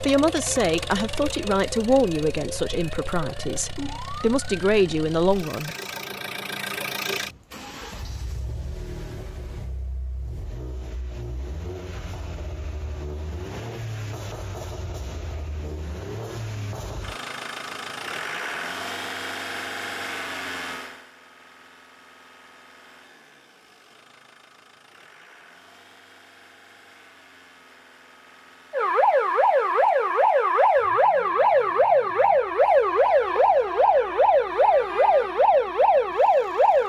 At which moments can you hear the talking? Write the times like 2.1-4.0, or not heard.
0.0-5.8.